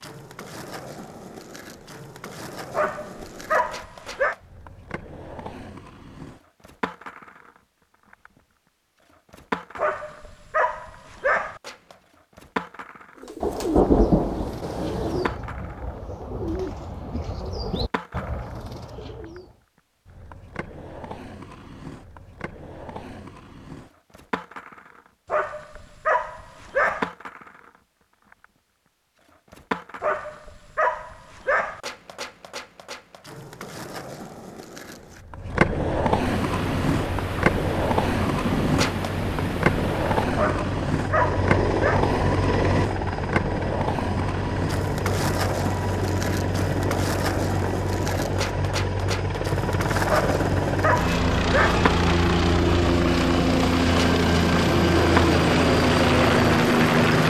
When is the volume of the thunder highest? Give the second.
14 s.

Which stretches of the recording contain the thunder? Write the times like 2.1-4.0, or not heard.
13.4-15.3, 36.2-40.2.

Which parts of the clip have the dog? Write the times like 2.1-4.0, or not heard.
2.7-4.3, 9.8-11.6, 25.3-27.1, 30.0-31.8, 40.4-42.0, 50.0-51.9.